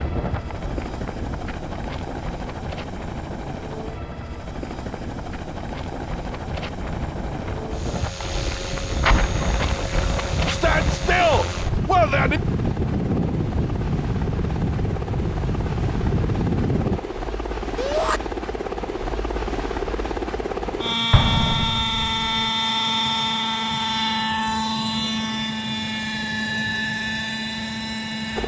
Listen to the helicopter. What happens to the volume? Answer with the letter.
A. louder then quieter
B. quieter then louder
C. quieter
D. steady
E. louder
E.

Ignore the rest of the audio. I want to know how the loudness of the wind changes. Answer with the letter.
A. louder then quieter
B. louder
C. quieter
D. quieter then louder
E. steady
B.